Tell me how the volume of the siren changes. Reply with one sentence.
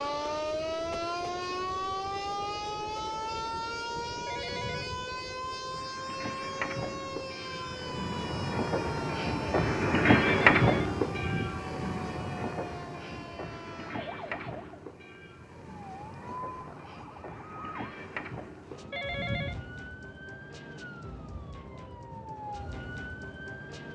The loudness of the siren goes down.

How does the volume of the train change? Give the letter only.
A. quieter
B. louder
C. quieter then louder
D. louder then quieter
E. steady
D.